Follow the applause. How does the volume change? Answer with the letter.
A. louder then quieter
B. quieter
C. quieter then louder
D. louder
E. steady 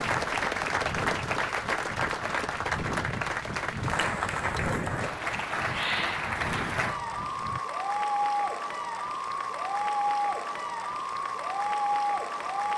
E.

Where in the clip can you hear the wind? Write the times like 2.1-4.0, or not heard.
0.0-7.6.